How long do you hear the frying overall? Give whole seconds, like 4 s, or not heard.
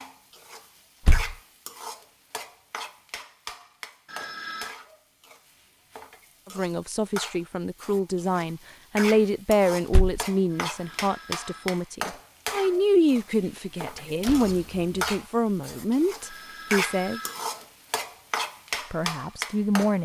20 s.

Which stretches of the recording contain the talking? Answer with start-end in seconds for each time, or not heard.
6.5-17.2, 18.9-20.0.